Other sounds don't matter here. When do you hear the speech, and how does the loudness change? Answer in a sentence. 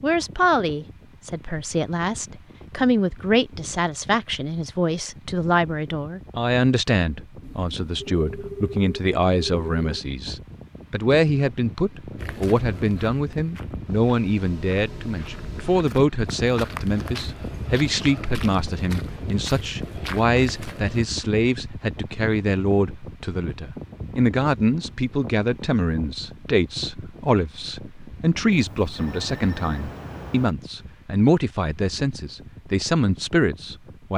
You can hear the speech from 0.0 to 34.1 s, at a steady volume.